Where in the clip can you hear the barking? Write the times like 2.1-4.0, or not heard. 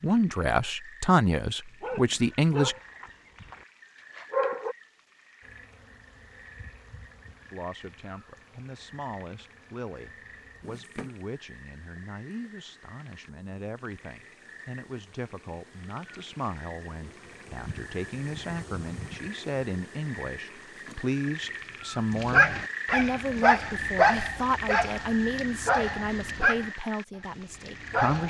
1.8-4.8, 22.1-28.2.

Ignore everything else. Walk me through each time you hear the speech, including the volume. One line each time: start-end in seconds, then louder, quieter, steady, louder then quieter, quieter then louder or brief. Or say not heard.
0.0-2.8 brief
7.5-28.2 louder.